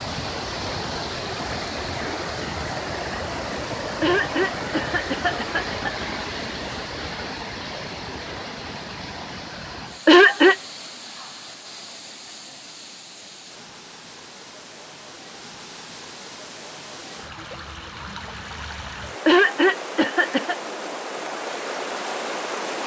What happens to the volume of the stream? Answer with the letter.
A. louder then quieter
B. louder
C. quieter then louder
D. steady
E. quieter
C.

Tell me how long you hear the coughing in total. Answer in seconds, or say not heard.
4 s.